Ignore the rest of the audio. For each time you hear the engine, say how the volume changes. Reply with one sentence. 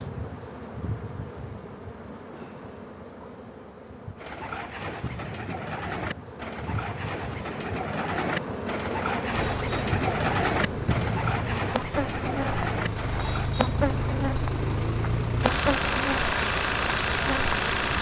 The engine can be heard from 9.3 to 17.9 s, getting louder.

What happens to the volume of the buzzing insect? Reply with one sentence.
The volume of the buzzing insect goes up.